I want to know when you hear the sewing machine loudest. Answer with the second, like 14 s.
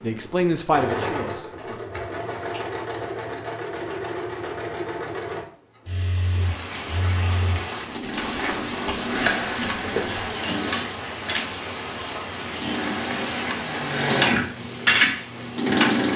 15 s.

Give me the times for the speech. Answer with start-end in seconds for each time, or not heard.
0.0-1.8.